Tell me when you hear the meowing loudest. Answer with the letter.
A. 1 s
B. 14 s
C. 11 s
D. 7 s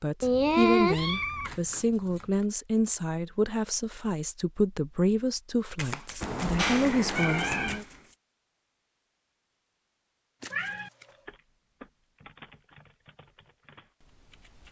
A.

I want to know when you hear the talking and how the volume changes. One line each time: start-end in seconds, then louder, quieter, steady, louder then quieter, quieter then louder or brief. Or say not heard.
0.0-7.8 steady.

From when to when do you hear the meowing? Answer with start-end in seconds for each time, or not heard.
0.2-1.6, 6.2-7.8, 10.5-10.9.